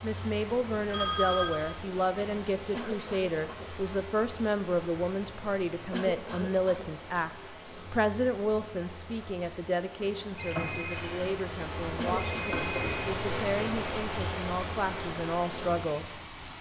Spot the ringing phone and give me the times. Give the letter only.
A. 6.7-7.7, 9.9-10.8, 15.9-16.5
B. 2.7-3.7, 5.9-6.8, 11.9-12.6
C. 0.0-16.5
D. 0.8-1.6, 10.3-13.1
D.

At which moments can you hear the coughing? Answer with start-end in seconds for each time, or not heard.
2.7-3.7, 5.9-6.8, 11.9-12.6.